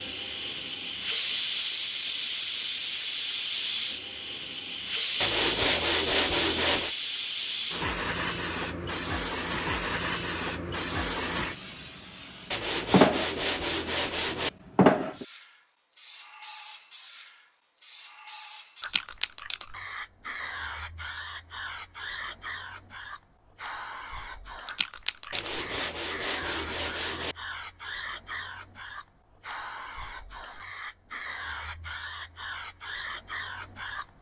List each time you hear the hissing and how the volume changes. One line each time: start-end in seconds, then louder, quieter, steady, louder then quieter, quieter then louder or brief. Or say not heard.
0.0-34.0 quieter.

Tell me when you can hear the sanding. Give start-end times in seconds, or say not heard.
5.2-7.0, 12.5-14.5, 25.3-27.4.